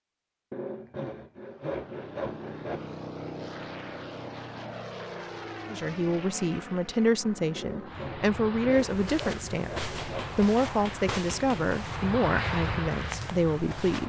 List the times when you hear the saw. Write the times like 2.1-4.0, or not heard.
0.5-2.8, 7.5-10.4.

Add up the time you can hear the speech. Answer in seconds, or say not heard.
8 s.